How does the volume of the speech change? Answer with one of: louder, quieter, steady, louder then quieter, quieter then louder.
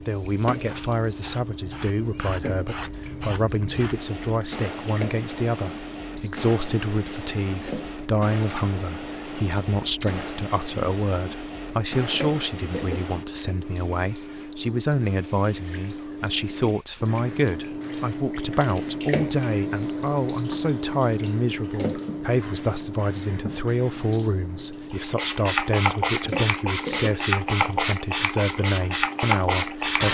steady.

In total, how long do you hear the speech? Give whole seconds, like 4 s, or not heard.
30 s.